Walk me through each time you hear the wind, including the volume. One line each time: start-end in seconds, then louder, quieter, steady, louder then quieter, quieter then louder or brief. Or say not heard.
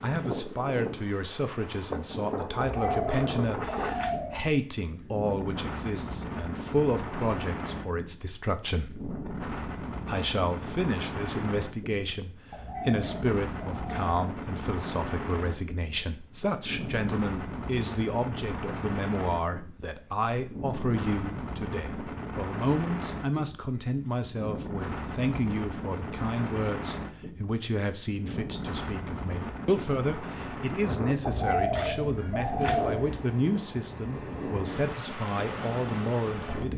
0.0-36.7 steady.